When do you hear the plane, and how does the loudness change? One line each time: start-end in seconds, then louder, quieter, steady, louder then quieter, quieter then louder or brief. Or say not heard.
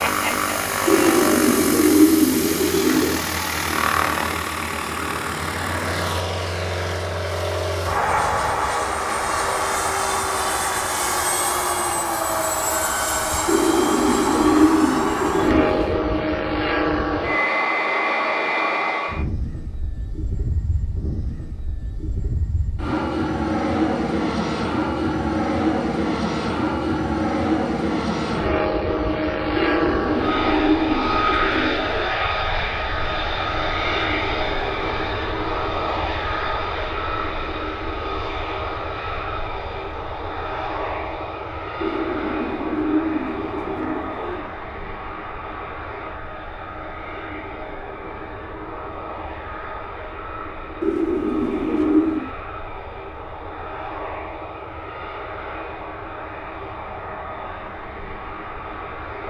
0.0-59.2 quieter.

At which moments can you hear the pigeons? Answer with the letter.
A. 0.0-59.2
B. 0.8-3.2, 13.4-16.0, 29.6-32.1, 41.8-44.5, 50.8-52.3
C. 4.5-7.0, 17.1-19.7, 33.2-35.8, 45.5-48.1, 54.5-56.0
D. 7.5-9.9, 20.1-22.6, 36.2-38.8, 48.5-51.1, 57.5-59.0
B.